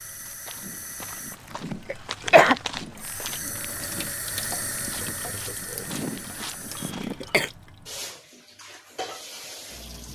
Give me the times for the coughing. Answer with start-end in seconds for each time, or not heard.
1.9-2.5, 6.8-7.5.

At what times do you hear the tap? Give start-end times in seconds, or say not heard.
0.0-10.0.